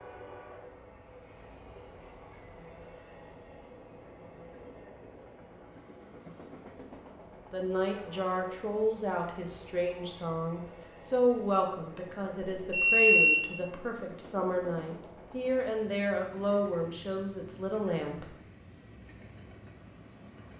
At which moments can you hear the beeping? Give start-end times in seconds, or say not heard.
12.6-13.4.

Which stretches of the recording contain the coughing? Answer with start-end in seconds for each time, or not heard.
not heard.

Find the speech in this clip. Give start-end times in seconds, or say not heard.
7.5-18.3.